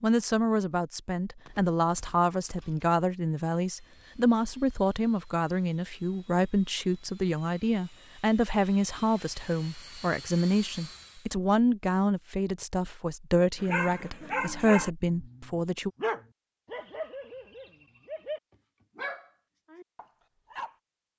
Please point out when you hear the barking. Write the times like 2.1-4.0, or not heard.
13.6-20.8.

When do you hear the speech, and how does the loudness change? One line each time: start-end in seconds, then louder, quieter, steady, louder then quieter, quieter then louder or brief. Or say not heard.
0.0-15.9 steady.